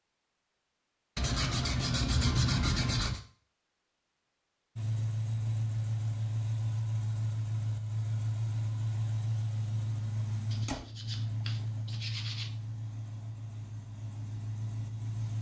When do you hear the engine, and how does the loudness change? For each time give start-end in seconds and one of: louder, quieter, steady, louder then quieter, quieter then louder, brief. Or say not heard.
4.8-15.3 quieter.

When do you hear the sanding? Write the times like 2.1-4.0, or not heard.
1.1-3.2, 10.5-12.5.